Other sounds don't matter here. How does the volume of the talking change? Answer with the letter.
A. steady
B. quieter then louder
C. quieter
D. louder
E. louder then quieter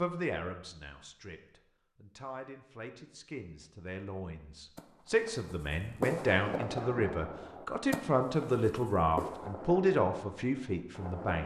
D.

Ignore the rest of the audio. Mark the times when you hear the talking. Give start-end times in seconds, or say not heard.
0.0-11.4.